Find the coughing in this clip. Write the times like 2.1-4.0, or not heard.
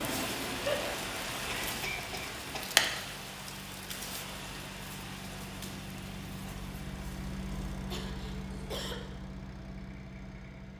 0.6-2.6, 7.8-9.0.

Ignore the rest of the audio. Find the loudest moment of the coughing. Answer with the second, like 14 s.
1 s.